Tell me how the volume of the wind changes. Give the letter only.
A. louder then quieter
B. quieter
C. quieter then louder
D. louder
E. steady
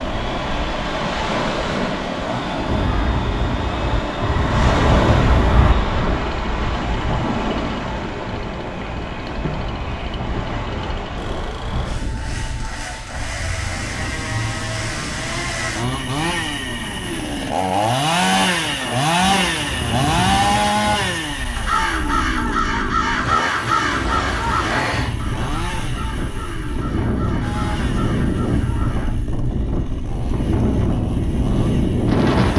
C.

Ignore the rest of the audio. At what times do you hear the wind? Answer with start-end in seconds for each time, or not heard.
0.0-32.5.